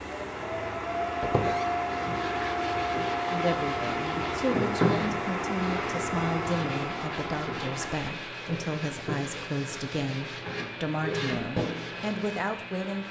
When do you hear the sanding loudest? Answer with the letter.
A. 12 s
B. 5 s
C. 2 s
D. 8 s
B.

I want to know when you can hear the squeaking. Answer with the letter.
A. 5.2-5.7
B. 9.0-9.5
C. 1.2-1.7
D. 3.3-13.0
C.